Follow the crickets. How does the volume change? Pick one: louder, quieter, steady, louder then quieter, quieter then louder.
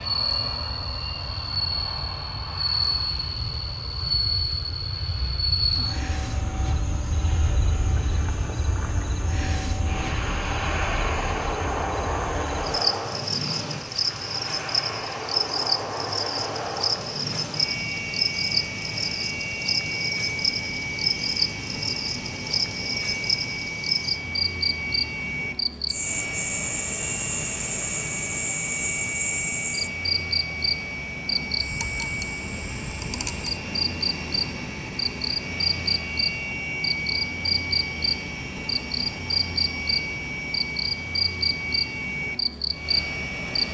steady.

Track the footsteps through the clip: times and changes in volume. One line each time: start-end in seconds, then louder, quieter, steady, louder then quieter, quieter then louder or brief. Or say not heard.
not heard.